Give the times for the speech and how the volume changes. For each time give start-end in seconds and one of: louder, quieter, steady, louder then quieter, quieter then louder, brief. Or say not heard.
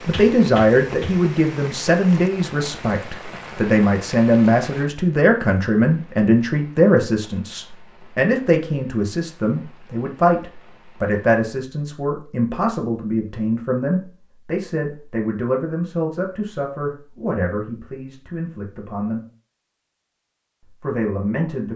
0.1-19.2 quieter
20.8-21.7 brief.